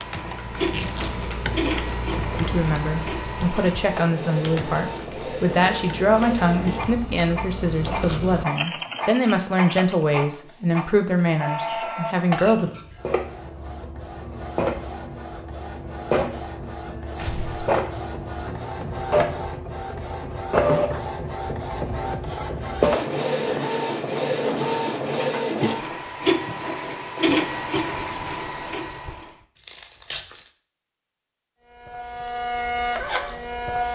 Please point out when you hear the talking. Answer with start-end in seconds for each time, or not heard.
2.4-12.7.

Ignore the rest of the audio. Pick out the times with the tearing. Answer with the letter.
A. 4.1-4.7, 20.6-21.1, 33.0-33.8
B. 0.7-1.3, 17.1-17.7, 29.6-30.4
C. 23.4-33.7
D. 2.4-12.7
B.